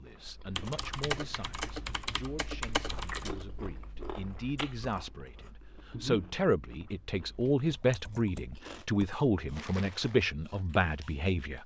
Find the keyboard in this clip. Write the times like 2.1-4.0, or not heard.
0.6-3.5, 7.7-9.2.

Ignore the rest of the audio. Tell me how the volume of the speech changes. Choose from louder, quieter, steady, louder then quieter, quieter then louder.
louder.